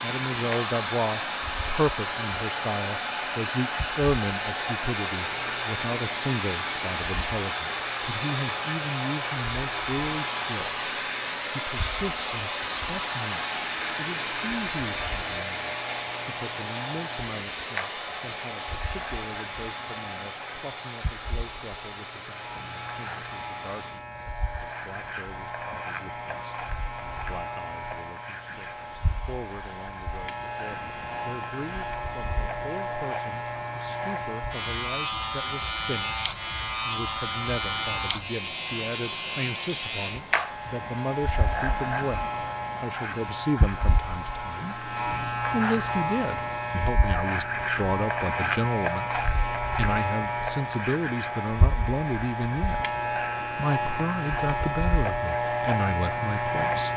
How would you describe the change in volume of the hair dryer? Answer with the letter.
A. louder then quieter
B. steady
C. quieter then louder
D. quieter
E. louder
D.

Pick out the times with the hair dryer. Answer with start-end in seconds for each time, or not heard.
0.0-56.9.